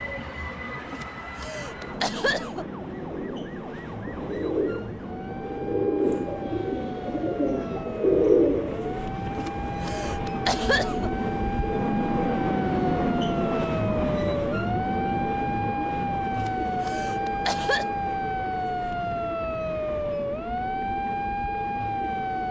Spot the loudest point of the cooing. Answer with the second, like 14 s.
8 s.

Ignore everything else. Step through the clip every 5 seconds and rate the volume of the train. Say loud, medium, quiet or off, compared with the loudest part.
medium, medium, loud, medium, medium.